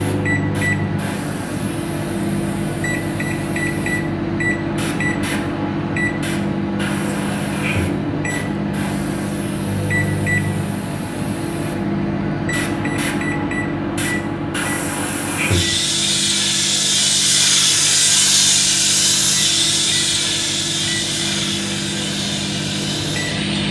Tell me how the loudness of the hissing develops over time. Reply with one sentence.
The loudness of the hissing goes up.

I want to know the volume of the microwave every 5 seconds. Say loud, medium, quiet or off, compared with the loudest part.
loud, loud, loud, medium, loud.